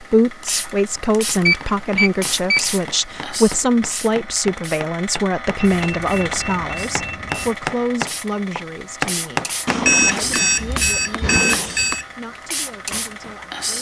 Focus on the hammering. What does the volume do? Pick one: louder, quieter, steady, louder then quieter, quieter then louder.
louder then quieter.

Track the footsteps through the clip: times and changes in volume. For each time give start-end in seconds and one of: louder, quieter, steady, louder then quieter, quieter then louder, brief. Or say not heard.
not heard.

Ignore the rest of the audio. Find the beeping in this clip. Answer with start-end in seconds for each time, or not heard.
1.4-2.6, 5.5-7.5, 9.7-12.1.